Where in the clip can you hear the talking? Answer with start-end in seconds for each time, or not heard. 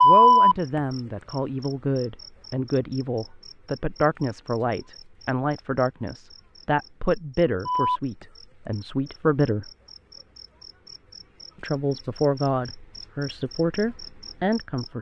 0.0-9.7, 11.6-14.9.